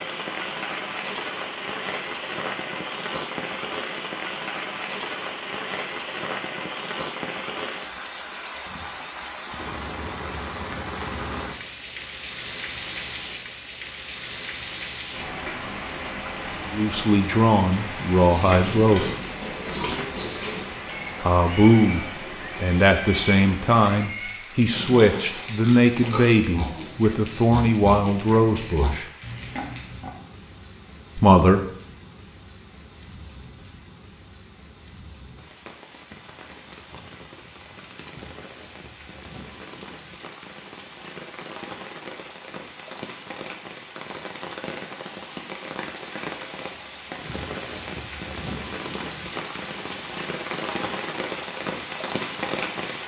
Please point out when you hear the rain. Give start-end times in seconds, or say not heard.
0.0-53.0.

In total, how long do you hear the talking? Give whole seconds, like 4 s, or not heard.
11 s.